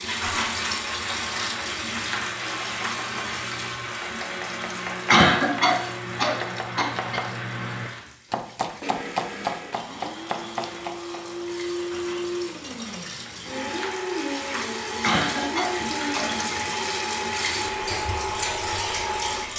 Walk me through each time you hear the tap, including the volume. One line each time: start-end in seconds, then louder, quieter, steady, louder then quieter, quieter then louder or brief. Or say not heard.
0.0-19.5 quieter then louder.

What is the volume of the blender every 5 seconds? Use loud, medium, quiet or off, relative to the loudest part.
loud, medium, loud, loud.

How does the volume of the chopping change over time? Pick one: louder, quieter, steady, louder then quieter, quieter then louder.
louder.